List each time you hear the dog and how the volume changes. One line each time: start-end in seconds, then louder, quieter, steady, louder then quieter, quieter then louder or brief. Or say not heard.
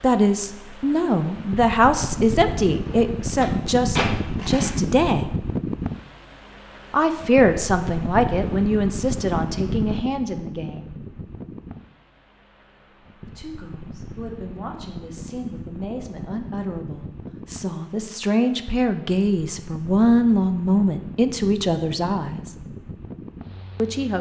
not heard.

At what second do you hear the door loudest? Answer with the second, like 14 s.
4 s.